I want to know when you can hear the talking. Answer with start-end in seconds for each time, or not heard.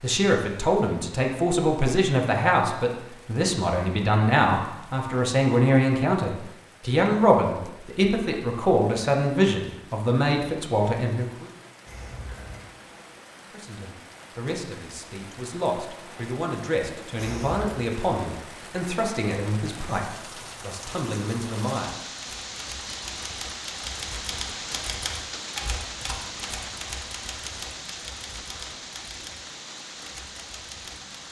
0.0-11.4, 13.4-21.9.